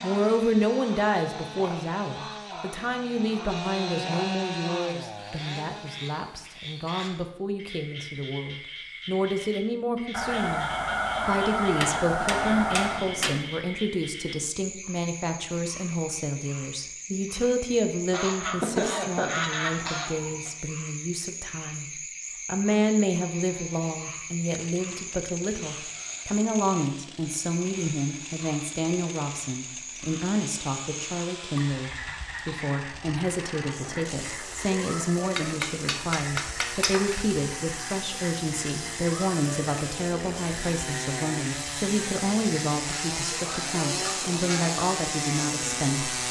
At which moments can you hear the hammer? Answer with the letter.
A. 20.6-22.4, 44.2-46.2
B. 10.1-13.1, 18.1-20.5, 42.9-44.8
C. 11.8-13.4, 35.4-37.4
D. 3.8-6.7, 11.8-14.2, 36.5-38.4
C.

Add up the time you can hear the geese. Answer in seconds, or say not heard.
7 s.